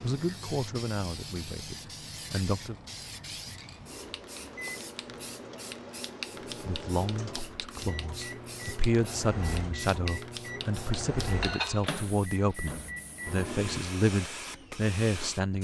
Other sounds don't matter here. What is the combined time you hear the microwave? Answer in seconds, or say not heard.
10 s.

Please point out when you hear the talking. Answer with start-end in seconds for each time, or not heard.
0.0-2.8, 6.6-15.5.